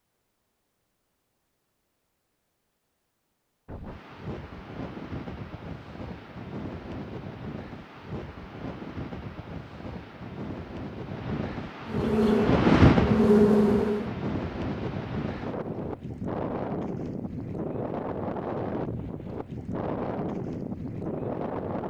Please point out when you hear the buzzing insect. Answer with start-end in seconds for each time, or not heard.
11.8-14.1.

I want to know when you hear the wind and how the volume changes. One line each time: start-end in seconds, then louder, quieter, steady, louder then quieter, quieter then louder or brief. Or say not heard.
3.6-21.8 louder then quieter.